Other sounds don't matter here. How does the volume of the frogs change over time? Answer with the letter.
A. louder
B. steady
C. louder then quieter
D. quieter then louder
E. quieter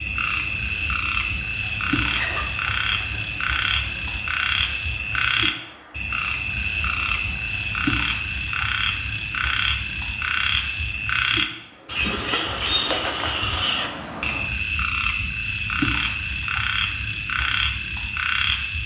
B.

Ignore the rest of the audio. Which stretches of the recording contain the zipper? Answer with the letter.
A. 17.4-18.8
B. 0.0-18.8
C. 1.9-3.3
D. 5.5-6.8
C.